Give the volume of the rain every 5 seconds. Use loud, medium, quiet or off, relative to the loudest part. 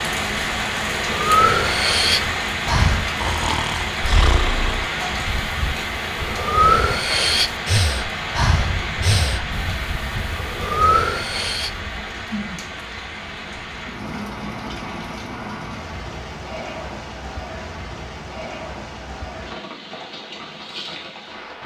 loud, loud, medium, medium, medium.